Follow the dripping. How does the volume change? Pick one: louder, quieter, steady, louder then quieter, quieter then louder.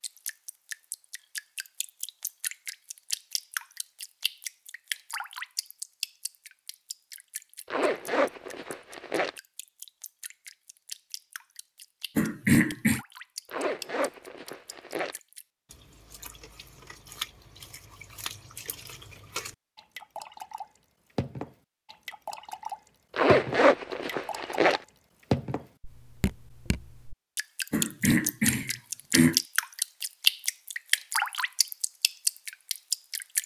quieter then louder.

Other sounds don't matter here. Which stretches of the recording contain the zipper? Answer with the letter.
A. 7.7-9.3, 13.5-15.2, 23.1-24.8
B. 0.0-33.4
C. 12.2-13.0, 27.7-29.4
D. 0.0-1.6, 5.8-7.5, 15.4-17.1
A.